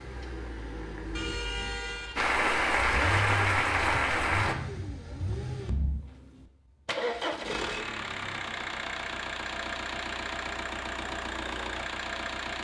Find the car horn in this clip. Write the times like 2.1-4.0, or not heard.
1.1-2.3, 7.5-8.0.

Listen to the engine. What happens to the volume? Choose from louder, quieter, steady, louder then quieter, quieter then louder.
louder.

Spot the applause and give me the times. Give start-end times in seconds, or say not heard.
2.1-4.5.